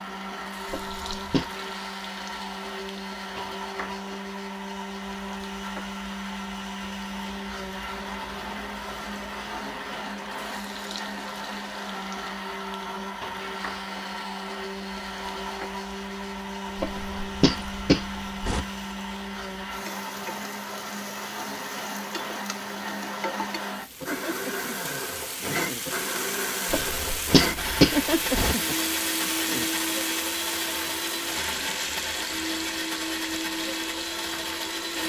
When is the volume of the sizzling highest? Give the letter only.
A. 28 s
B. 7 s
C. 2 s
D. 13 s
A.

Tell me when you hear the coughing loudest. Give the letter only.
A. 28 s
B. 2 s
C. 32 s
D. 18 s
A.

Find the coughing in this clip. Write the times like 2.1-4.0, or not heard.
0.7-1.5, 16.8-18.6, 26.7-28.6.